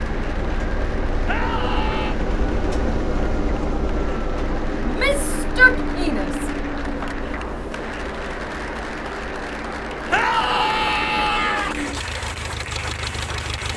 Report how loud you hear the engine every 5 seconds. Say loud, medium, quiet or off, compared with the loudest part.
loud, loud, medium.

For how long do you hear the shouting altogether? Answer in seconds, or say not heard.
4 s.